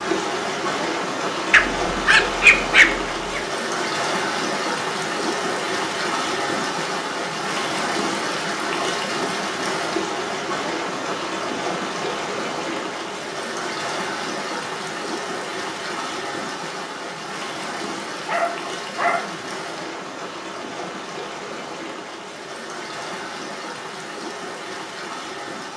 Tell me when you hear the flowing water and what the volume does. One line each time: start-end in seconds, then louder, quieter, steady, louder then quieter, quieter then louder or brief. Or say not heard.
0.0-25.7 quieter.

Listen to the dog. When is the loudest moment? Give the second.
3 s.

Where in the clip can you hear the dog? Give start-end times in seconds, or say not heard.
1.5-3.5, 18.2-19.4.